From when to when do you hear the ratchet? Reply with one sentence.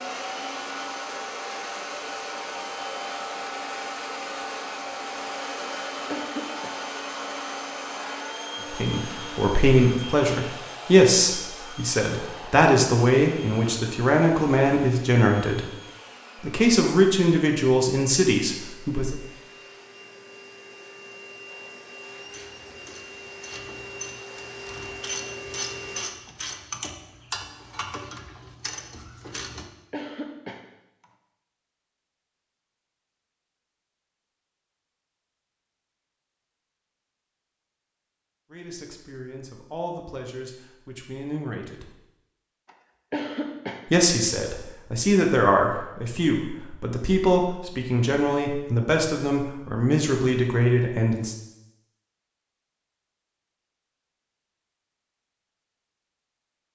You can hear the ratchet from 22.2 to 29.7 s.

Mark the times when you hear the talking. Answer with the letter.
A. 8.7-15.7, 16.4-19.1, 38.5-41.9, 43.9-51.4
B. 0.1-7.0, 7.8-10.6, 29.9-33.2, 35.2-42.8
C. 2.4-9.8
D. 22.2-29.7
A.